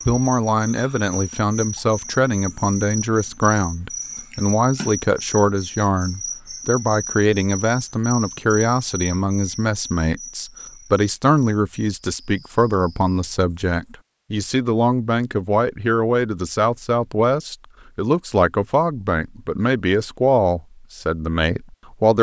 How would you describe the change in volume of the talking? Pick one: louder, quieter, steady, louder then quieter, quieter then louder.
steady.